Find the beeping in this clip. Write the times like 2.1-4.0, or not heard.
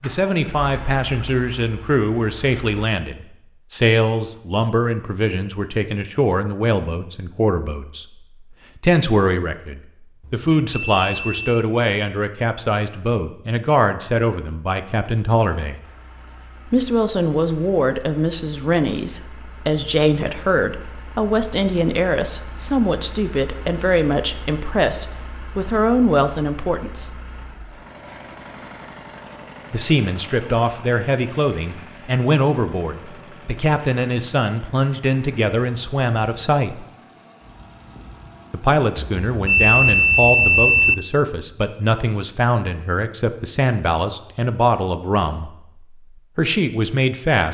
10.2-11.7, 39.0-41.0.